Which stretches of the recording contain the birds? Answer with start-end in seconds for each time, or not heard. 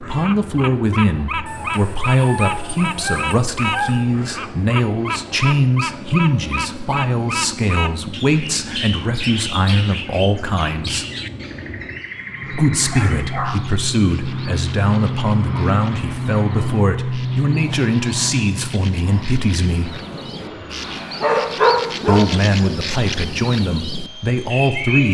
0.0-25.1.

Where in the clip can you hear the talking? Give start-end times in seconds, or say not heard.
0.0-11.1, 12.5-19.9, 22.1-25.1.